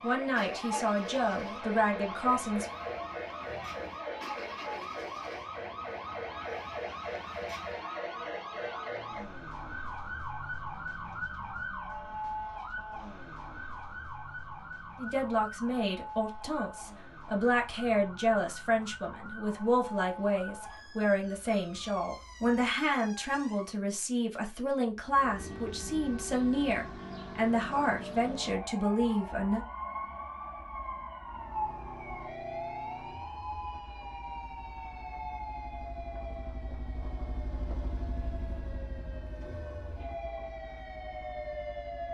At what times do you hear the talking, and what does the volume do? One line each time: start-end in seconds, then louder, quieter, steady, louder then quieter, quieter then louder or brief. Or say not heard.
0.0-2.6 brief
14.9-29.6 steady.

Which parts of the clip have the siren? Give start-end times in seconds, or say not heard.
0.0-23.8, 25.1-42.0.